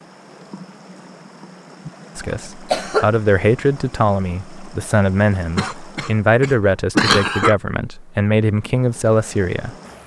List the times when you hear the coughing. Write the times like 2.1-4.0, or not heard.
2.3-3.1, 5.5-7.5.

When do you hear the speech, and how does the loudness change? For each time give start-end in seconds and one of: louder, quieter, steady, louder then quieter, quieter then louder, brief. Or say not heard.
2.1-9.8 steady.